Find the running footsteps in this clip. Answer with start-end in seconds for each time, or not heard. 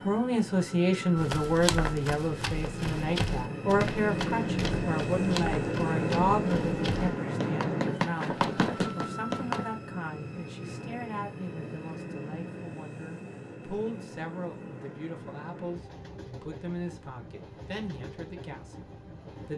1.1-9.7.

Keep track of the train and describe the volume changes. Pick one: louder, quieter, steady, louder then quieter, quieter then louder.
louder then quieter.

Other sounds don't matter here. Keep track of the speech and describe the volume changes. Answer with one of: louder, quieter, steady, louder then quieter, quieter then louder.
quieter.